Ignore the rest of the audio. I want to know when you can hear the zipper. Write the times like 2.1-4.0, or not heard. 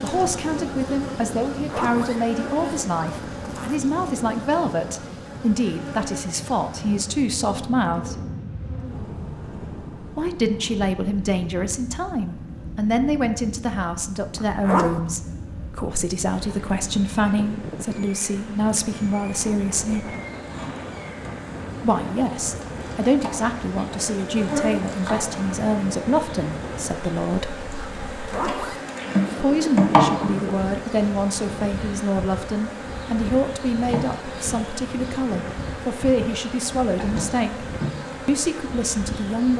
1.6-3.8, 14.3-15.0, 28.2-29.4.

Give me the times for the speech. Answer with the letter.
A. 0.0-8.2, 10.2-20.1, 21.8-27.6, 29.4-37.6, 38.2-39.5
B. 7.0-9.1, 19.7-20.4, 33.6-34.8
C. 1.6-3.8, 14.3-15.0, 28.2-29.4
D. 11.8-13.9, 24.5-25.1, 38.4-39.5
A.